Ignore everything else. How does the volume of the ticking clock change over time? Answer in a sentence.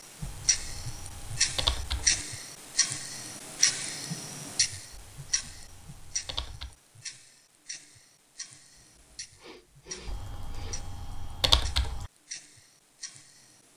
The volume of the ticking clock goes down.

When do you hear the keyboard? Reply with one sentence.
You can hear the keyboard from 0.2 to 2.2 s, from 4.9 to 6.8 s and from 10.1 to 12.1 s.